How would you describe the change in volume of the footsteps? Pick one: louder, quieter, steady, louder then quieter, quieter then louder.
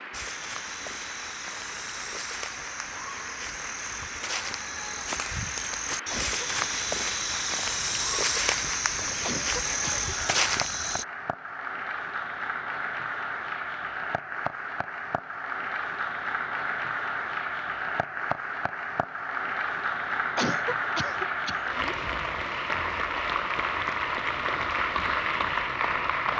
louder.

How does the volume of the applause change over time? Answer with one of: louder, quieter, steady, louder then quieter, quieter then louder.
louder.